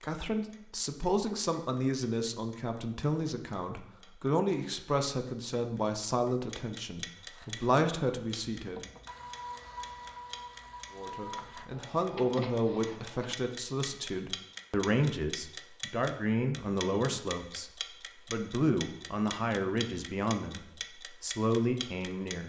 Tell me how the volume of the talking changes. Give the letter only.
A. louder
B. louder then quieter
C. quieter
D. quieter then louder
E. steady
E.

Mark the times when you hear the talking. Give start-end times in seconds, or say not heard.
0.0-8.8, 10.9-22.4.